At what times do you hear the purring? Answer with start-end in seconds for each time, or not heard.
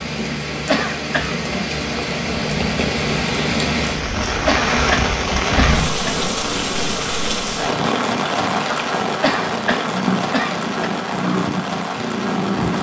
2.3-12.7.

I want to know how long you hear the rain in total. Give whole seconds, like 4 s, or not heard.
13 s.